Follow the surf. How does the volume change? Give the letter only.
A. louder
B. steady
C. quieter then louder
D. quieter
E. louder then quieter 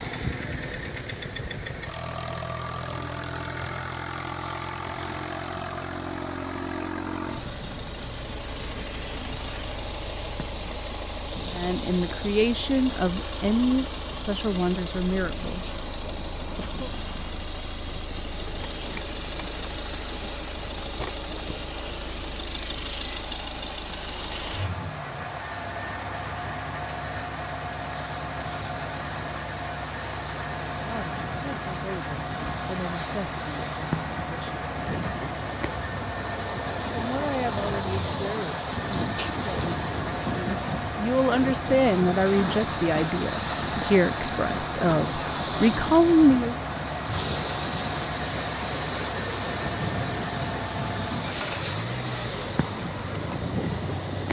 A.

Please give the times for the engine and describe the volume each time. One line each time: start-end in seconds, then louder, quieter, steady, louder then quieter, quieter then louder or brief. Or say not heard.
0.0-54.2 steady.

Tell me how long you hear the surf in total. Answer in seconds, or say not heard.
54 s.